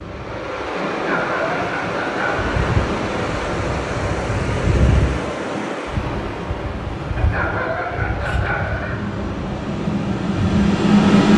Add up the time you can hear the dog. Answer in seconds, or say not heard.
4 s.